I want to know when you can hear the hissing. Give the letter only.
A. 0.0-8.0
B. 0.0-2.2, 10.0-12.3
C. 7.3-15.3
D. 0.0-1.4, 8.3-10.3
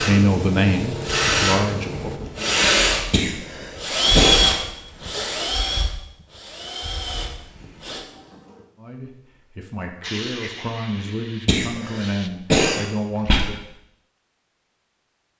B.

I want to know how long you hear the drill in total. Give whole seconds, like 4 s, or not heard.
8 s.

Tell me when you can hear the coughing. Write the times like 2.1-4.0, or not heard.
3.1-4.5, 11.4-13.4.